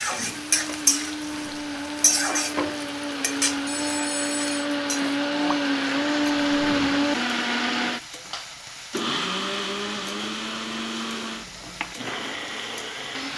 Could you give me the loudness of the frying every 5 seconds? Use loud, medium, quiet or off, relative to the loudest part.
loud, quiet, quiet.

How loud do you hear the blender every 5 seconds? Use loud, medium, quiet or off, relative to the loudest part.
medium, loud, medium.